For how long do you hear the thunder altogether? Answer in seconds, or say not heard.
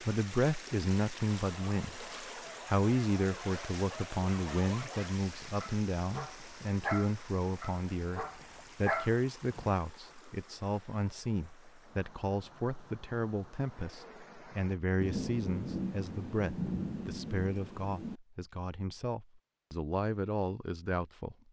3 s.